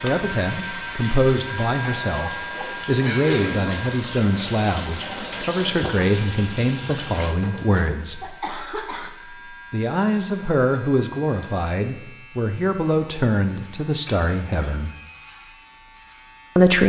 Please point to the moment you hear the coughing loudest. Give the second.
3 s.